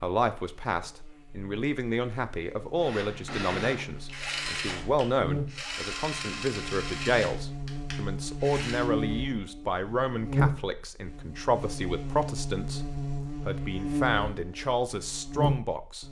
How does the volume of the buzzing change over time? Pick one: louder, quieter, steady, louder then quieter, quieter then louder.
louder.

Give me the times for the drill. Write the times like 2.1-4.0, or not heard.
2.8-8.9.